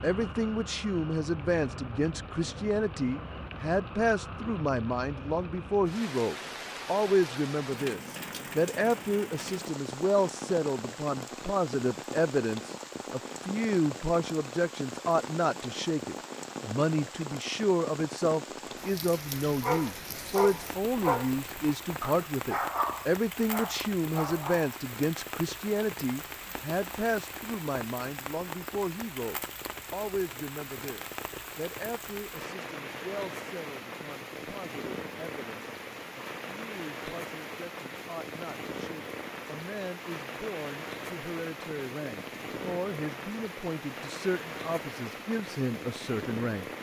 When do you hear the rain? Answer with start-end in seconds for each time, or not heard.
0.0-46.7.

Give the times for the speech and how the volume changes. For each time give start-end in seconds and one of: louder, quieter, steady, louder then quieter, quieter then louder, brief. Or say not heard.
0.0-46.6 quieter.